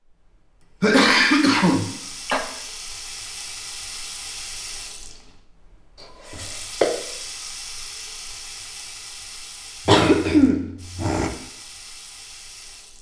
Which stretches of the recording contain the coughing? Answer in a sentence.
The coughing can be heard from 0.8 to 2.4 s, from 6.3 to 7.0 s and from 9.8 to 11.3 s.